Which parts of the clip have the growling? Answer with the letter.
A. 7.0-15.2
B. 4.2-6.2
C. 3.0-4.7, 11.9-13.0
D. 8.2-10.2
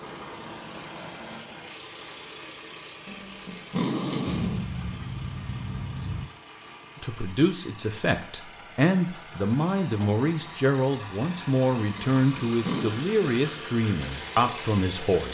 C.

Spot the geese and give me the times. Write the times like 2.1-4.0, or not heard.
4.2-6.2.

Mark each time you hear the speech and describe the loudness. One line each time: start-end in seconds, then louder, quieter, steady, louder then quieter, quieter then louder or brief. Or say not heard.
7.0-15.2 steady.